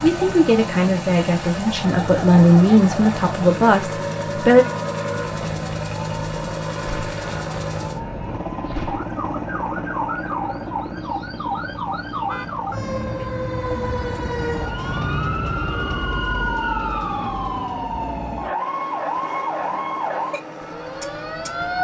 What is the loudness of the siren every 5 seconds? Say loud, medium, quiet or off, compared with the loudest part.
medium, medium, loud, loud, loud.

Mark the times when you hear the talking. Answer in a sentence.
You can hear the talking from 0.0 to 4.7 s.